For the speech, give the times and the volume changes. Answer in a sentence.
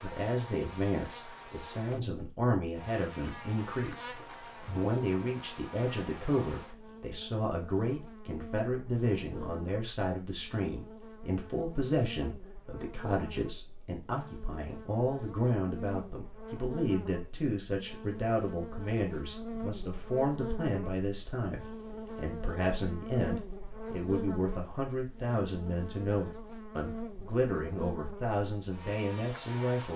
The speech can be heard from 0.0 to 29.9 s, at a steady volume.